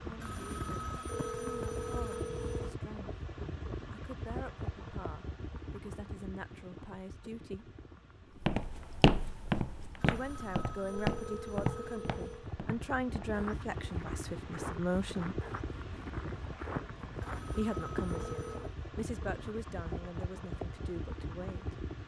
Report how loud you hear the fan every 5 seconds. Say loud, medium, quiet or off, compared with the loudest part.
loud, medium, loud, loud, loud.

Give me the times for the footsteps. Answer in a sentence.
You can hear the footsteps from 8.4 to 18.6 s.